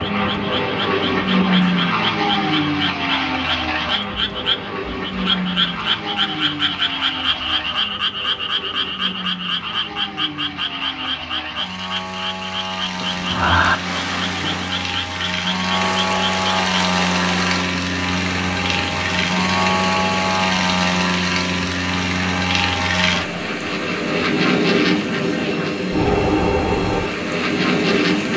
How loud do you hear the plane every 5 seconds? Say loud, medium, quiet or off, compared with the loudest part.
loud, medium, medium, loud, loud, loud.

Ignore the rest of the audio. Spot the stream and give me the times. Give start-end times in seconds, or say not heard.
13.7-28.3.